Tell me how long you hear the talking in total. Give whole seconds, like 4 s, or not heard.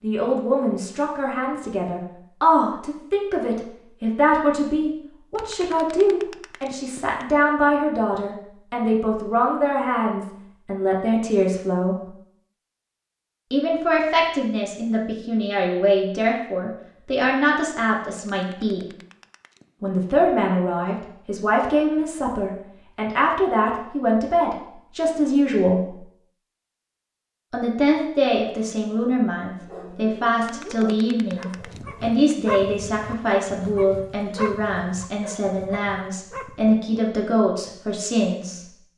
35 s.